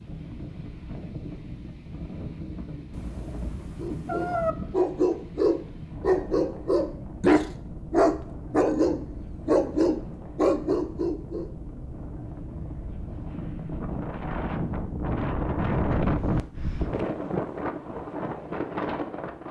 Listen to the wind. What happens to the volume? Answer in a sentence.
The loudness of the wind goes up.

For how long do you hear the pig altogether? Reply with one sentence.
The pig can't be heard in this clip.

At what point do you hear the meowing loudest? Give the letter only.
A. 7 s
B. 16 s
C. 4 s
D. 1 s
C.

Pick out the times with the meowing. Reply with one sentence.
The meowing can be heard from 2.9 to 4.5 s.